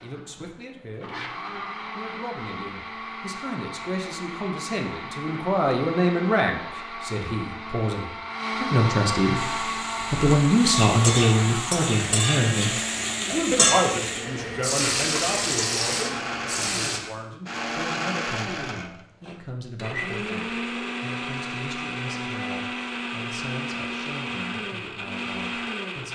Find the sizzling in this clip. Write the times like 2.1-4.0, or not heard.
9.3-17.0.